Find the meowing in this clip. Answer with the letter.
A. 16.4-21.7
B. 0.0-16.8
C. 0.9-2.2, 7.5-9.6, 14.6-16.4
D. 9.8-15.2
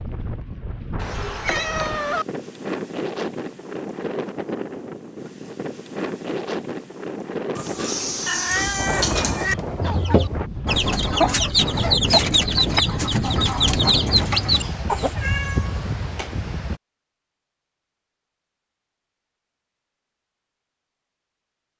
C.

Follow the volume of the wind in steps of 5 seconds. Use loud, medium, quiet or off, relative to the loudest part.
loud, loud, loud, loud, off.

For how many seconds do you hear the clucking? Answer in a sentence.
You can hear the clucking for 5 seconds altogether.